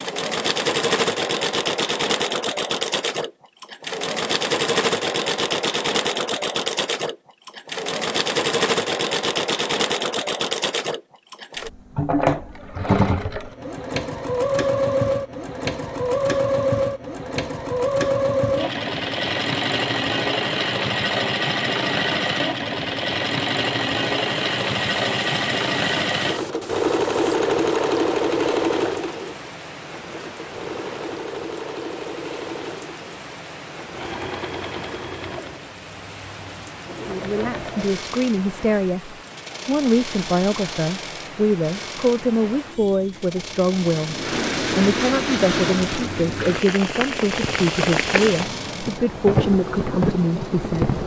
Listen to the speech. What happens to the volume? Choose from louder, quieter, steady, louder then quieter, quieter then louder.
steady.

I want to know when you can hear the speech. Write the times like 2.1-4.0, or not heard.
37.0-51.0.